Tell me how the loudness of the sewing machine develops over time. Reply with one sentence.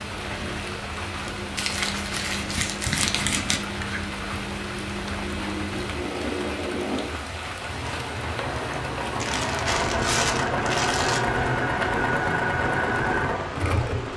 The volume of the sewing machine goes up.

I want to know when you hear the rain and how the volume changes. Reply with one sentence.
You can hear the rain from 0.0 to 14.1 s, at a steady volume.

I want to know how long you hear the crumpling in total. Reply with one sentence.
You can hear the crumpling for 4 seconds altogether.